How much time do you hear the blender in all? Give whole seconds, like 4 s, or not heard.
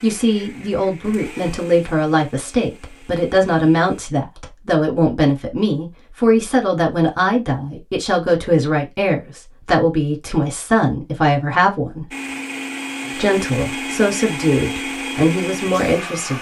8 s.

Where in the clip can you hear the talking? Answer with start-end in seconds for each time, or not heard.
0.0-12.1, 13.2-16.3.